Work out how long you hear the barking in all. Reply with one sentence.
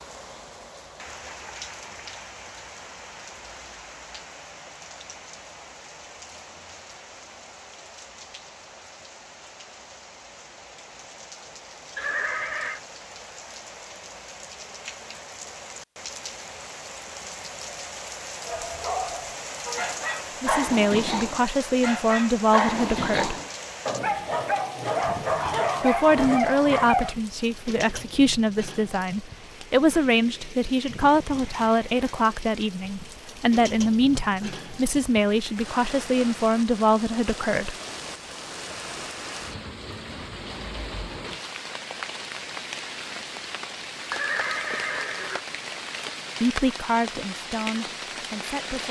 You can hear the barking for 9 seconds altogether.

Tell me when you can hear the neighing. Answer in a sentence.
You can hear the neighing from 11.9 to 12.8 s and from 44.1 to 45.5 s.